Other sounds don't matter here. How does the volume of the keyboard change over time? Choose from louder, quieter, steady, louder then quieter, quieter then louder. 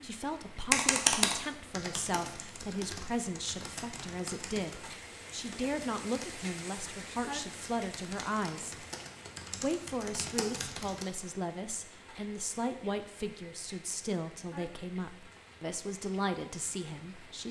quieter then louder.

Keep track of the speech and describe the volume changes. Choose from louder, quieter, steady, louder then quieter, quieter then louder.
steady.